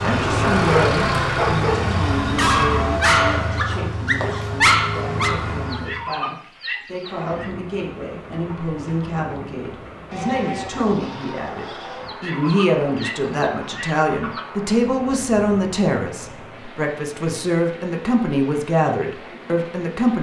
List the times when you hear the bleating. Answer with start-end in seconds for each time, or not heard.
2.8-3.8, 10.1-12.1.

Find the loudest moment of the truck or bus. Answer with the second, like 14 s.
1 s.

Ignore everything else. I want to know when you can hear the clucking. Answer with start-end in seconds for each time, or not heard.
5.7-7.5, 12.0-14.4.